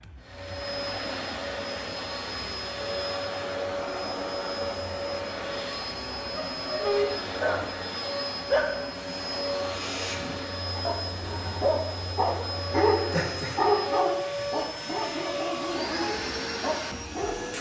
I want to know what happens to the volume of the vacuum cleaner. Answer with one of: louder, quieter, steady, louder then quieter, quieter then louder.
steady.